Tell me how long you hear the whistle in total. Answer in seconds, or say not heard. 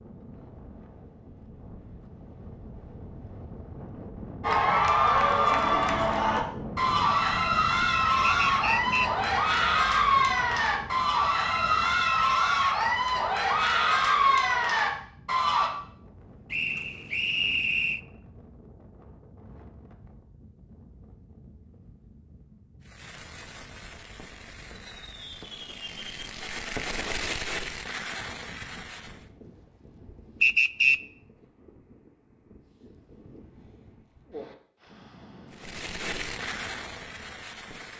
3 s.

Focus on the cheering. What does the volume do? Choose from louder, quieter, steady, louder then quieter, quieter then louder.
steady.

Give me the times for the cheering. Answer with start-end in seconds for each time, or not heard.
4.4-15.7.